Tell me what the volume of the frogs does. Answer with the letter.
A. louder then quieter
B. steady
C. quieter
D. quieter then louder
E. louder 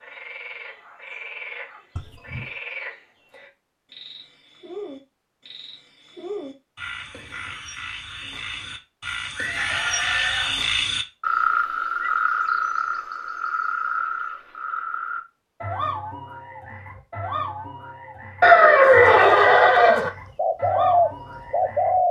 A.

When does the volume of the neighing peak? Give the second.
19 s.